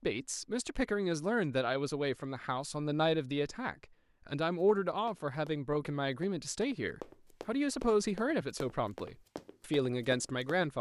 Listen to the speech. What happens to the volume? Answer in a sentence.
The volume of the speech stays about the same.